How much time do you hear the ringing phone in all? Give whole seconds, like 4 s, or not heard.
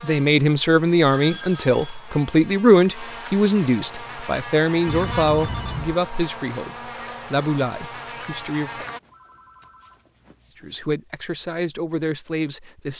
4 s.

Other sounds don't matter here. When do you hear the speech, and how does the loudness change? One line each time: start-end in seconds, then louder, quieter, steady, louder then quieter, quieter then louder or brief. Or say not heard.
0.0-8.8 quieter
10.6-12.9 brief.